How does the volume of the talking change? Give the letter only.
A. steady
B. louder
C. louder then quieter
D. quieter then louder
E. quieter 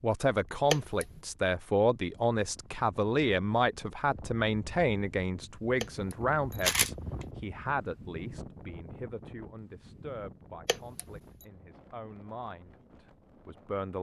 E.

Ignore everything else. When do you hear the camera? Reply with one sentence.
The camera can be heard from 0.7 to 1.2 s, from 5.8 to 7.2 s and from 10.7 to 11.2 s.